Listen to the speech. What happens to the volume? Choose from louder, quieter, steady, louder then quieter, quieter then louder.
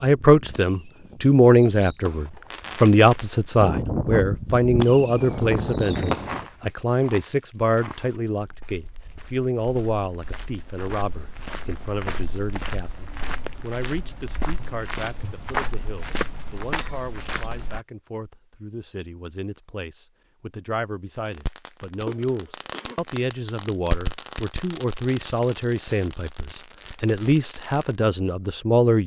quieter then louder.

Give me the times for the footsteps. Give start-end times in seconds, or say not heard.
5.8-17.8.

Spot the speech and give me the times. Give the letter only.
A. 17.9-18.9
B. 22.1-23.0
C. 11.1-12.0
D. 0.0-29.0
D.